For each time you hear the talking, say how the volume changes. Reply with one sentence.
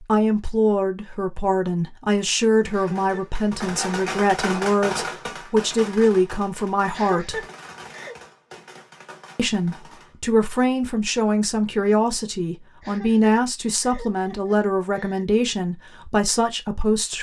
You can hear the talking from 0.0 to 7.5 s, at a steady volume; and from 9.3 to 17.1 s, at a steady volume.